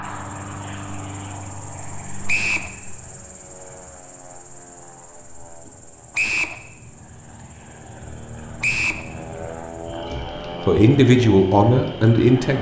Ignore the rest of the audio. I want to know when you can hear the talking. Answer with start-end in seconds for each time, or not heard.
10.1-12.5.